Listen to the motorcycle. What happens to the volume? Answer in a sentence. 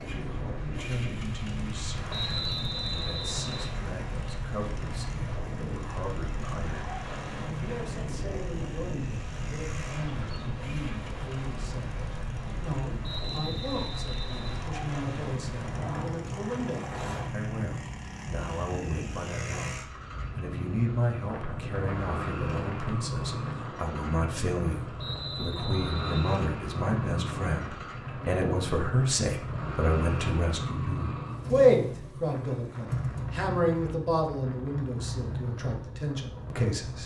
The loudness of the motorcycle goes up.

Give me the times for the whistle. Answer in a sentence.
You can hear the whistle from 2.1 to 3.8 s, from 13.0 to 14.7 s and from 24.9 to 26.4 s.